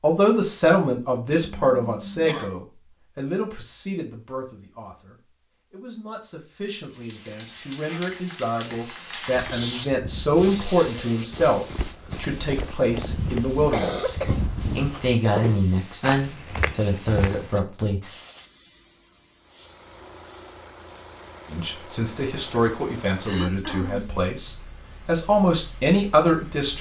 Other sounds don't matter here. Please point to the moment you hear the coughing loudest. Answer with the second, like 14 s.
14 s.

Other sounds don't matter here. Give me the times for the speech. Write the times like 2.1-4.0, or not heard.
0.0-14.1, 14.8-18.0, 21.5-26.7.